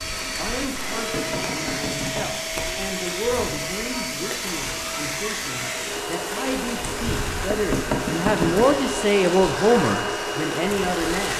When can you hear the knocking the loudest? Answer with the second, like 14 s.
8 s.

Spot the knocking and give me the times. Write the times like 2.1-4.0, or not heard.
0.9-2.3, 7.5-8.7.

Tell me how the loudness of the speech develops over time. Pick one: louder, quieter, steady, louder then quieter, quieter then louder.
louder.